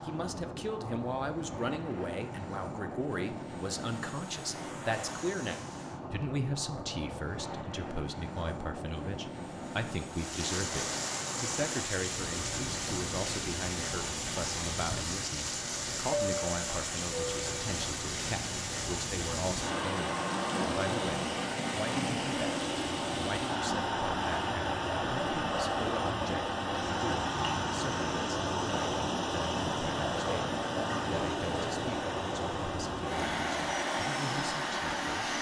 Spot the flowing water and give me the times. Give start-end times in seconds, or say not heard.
10.1-35.3.